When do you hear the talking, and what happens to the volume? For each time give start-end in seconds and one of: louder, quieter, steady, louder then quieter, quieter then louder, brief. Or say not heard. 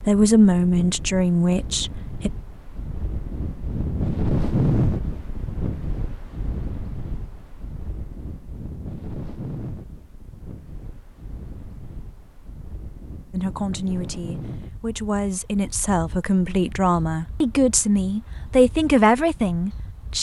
0.0-2.3 brief
13.3-20.1 louder.